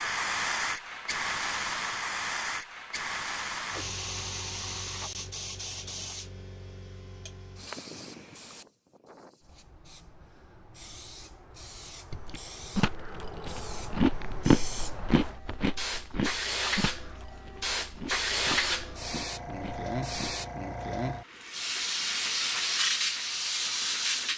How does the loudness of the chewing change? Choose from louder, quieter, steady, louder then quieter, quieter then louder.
louder then quieter.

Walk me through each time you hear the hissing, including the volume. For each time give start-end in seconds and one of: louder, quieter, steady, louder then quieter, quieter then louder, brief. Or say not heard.
0.0-24.3 quieter then louder.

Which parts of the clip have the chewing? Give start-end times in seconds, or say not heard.
12.1-20.4.